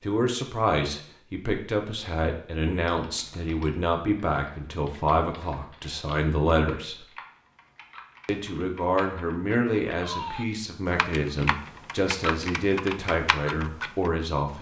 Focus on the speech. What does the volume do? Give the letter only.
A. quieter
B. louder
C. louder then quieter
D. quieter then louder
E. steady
E.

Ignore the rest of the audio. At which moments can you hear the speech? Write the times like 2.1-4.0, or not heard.
0.0-7.0, 8.2-14.5.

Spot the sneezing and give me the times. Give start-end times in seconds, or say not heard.
not heard.